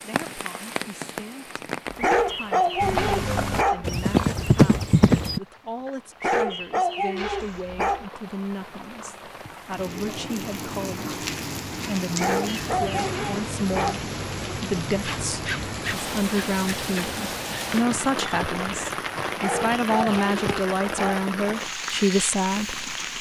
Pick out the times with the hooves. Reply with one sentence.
The hooves can be heard from 2.8 to 5.4 s and from 14.9 to 20.6 s.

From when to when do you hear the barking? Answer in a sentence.
The barking can be heard from 2.0 to 3.9 s, from 6.2 to 8.1 s, from 12.2 to 14.0 s and from 19.4 to 21.2 s.